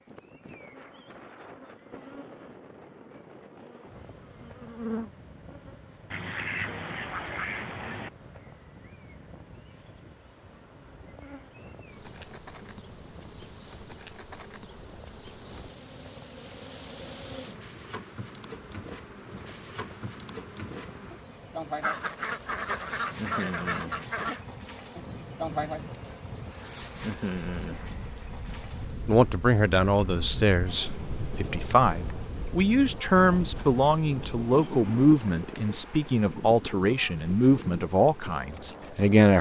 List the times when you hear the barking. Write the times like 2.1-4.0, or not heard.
not heard.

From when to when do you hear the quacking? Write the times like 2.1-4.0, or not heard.
6.1-8.1, 21.8-24.4.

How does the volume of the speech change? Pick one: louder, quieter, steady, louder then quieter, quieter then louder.
steady.